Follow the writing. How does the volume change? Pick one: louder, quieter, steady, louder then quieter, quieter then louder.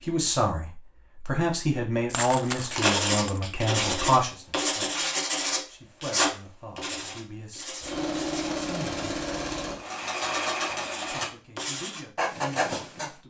quieter then louder.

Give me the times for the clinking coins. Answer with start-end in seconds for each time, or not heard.
2.1-3.4.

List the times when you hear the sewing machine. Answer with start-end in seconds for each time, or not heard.
7.8-11.3.